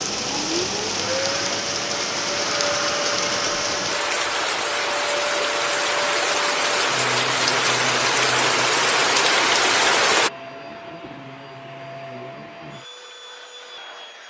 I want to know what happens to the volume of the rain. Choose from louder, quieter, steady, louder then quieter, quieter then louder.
louder.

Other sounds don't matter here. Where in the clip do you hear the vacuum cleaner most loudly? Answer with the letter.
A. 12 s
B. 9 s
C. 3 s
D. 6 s
C.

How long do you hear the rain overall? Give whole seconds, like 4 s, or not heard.
10 s.